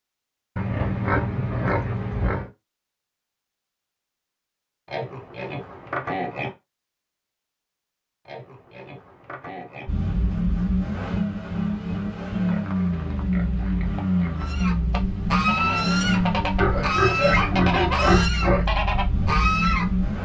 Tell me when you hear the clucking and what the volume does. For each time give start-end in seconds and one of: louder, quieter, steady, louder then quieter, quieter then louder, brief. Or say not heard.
14.3-20.1 steady.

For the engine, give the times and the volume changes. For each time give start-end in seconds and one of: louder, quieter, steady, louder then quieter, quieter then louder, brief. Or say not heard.
9.8-20.2 steady.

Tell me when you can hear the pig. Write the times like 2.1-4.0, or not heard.
0.6-2.5, 4.8-6.5, 8.2-9.9, 12.4-14.5, 16.6-18.6.